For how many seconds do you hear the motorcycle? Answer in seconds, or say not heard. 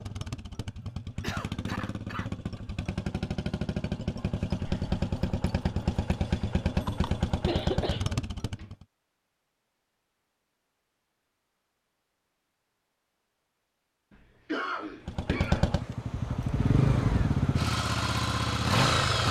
13 s.